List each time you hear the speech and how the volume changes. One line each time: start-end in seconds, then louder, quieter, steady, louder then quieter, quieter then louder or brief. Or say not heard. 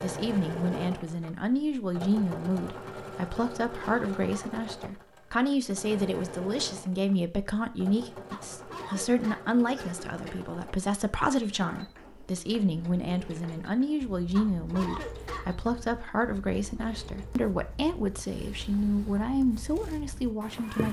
0.0-20.8 steady.